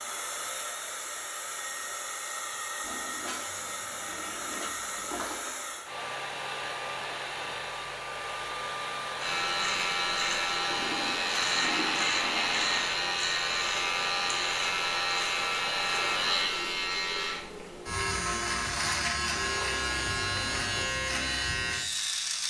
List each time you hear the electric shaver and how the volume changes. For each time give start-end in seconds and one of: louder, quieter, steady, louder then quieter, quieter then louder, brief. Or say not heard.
9.2-22.4 steady.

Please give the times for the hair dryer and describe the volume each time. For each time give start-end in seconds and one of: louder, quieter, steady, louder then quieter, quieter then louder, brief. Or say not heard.
0.0-16.7 steady.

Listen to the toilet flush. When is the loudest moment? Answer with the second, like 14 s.
12 s.